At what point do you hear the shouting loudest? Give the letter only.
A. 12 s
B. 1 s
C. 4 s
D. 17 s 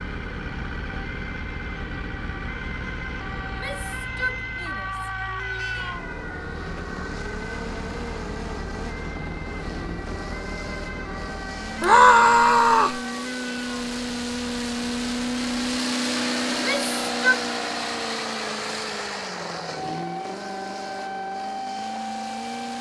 A.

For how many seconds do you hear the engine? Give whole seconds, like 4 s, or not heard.
23 s.